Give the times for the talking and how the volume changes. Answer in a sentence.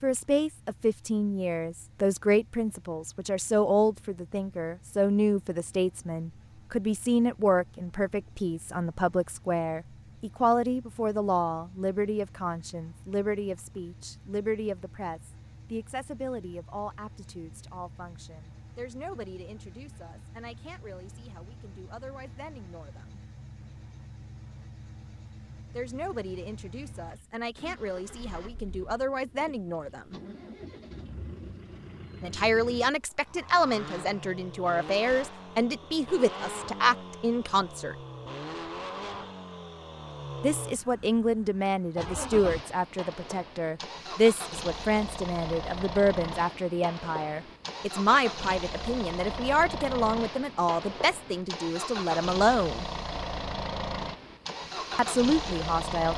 You can hear the talking from 0.0 to 23.2 s, getting quieter; from 25.8 to 30.2 s, getting louder; from 32.2 to 38.0 s, at a steady volume; from 40.4 to 52.9 s, at a steady volume; and briefly from 55.0 to 56.1 s.